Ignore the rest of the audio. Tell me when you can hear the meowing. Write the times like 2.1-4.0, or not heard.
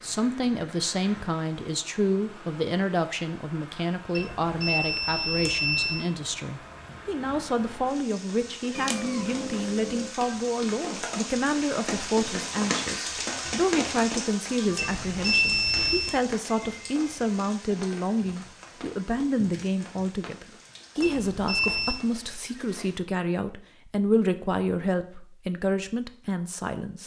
8.7-10.2.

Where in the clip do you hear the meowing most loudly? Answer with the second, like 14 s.
9 s.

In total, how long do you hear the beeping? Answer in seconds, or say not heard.
4 s.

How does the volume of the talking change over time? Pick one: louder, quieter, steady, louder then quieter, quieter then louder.
steady.